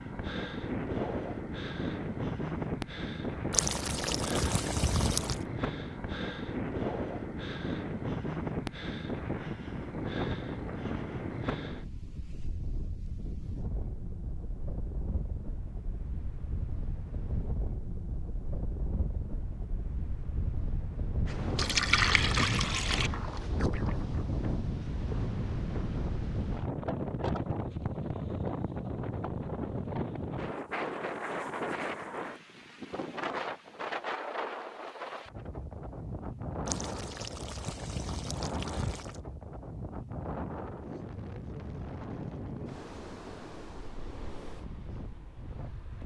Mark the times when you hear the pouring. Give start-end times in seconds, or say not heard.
3.5-5.4, 21.6-23.1, 36.6-39.2.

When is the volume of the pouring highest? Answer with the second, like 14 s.
22 s.